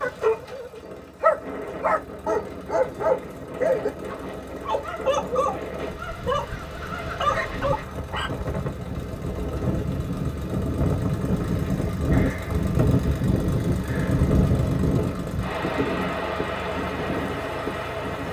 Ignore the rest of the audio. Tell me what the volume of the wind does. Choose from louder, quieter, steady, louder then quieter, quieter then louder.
louder.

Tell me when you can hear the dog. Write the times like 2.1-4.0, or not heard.
0.0-8.3.